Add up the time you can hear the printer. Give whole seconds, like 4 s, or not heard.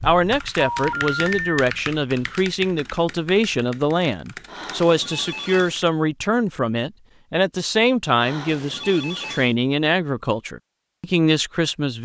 not heard.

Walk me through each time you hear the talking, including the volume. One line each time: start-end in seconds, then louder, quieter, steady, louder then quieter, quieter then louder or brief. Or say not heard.
0.0-11.9 steady.